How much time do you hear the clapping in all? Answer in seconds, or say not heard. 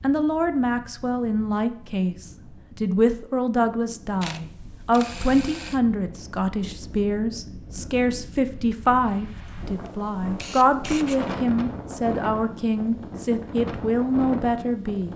not heard.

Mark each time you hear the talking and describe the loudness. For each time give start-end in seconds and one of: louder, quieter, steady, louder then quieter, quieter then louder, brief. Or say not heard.
0.0-15.1 steady.